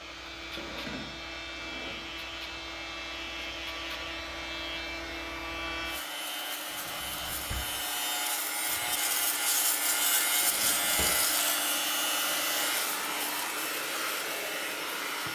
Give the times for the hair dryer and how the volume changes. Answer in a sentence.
You can hear the hair dryer from 0.0 to 15.2 s, getting louder.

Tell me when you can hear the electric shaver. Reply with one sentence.
The electric shaver can be heard from 0.0 to 15.2 s.